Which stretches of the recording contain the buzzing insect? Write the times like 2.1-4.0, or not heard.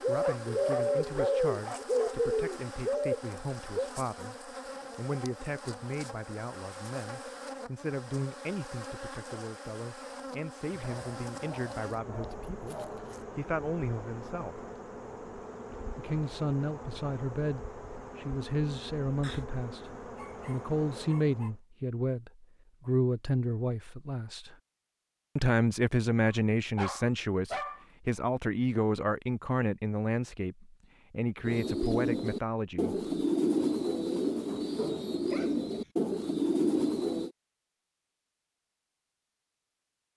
0.0-21.6.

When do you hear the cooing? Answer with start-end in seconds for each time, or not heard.
0.0-3.9, 31.4-37.3.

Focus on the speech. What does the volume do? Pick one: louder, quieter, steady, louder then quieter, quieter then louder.
louder.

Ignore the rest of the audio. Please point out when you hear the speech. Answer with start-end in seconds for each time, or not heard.
0.1-14.6, 15.9-24.5, 25.4-33.0.